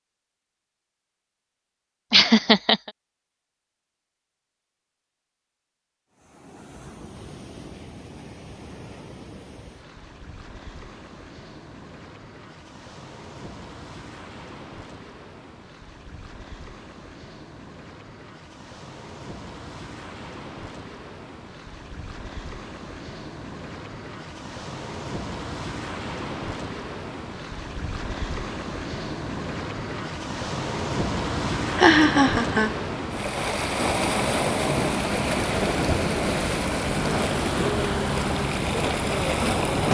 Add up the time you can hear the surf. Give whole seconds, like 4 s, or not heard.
34 s.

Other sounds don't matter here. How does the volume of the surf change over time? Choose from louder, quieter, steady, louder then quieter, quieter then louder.
louder.